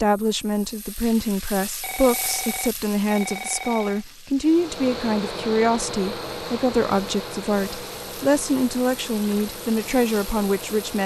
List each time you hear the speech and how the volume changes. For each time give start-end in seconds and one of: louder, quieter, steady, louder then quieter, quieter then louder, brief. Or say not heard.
0.0-11.0 steady.